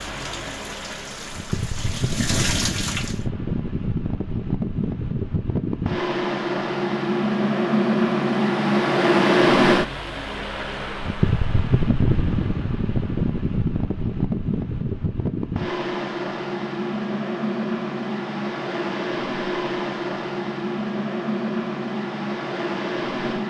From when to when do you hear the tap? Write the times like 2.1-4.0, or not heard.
0.0-3.3.